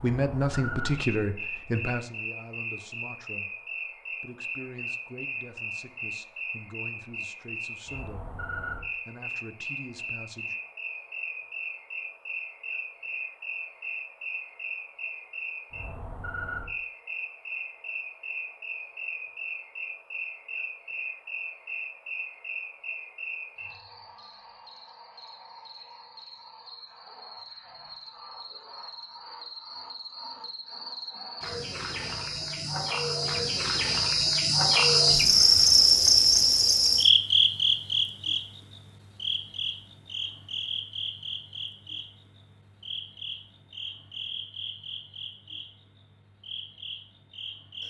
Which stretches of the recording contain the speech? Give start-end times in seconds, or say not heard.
0.0-10.6.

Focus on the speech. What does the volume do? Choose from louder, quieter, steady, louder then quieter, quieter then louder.
quieter.